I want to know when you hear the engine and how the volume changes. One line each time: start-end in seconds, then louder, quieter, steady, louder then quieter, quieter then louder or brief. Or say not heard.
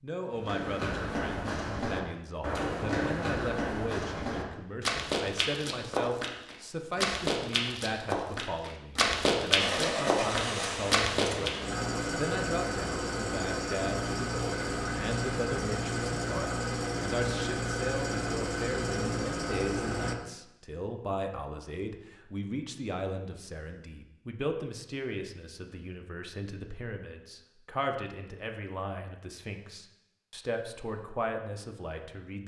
9.6-20.1 steady.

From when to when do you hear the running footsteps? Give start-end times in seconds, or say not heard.
0.3-11.5.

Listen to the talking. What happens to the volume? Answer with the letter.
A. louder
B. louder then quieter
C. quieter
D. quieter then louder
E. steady
E.